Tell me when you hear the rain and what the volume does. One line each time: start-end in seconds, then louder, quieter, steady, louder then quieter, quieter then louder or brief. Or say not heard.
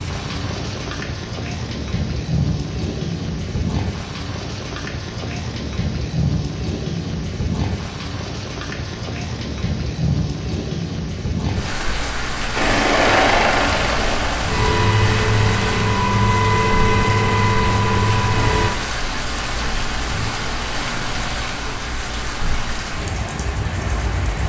0.0-24.4 steady.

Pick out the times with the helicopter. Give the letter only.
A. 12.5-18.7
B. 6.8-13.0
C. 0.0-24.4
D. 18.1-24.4
A.